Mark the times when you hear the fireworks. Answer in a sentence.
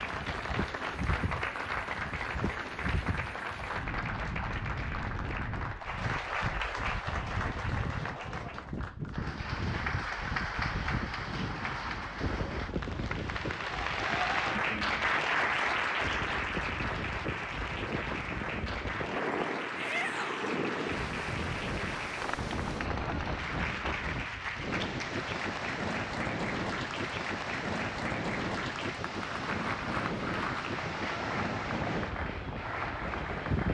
The fireworks can't be heard in this clip.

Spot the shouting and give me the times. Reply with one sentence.
You can hear the shouting from 19.8 to 20.6 s.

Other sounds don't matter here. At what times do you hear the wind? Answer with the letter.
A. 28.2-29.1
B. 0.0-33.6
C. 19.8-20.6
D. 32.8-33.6
B.